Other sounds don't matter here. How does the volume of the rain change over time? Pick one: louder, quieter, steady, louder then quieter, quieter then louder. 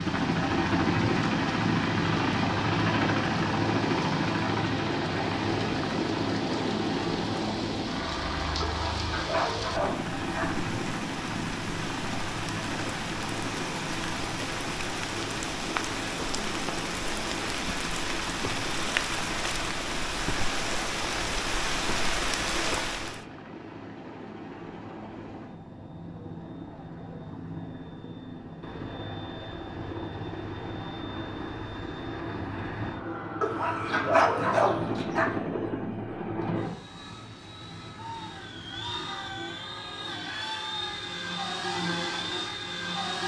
louder.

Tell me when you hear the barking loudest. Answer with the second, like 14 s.
34 s.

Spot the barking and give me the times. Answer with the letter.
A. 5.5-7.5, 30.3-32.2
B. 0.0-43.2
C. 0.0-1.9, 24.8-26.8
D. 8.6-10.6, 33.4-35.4
D.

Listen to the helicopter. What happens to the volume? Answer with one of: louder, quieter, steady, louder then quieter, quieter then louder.
quieter then louder.